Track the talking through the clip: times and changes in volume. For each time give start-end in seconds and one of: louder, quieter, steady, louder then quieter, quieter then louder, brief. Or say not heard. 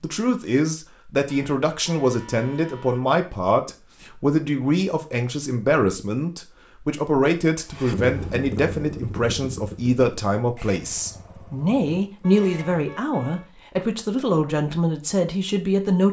0.0-16.0 steady.